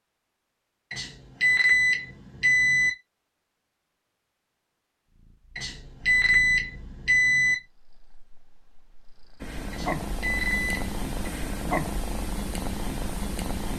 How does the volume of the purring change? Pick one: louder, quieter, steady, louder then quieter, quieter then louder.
quieter then louder.